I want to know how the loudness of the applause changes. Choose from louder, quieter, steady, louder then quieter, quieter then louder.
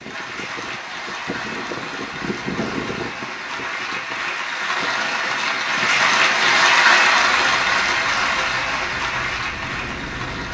louder then quieter.